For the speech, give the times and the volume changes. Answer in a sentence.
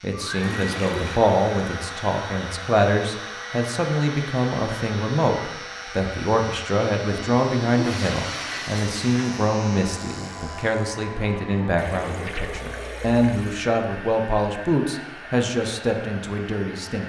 You can hear the speech from 0.0 to 17.0 s, at a steady volume.